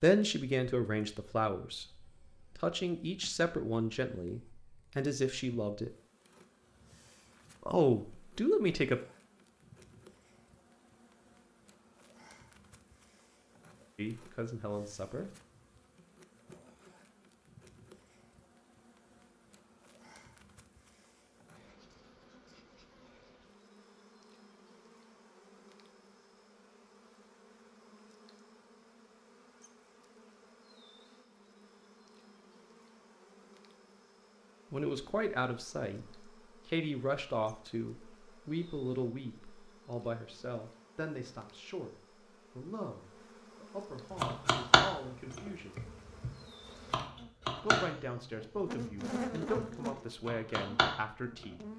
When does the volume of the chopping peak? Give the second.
45 s.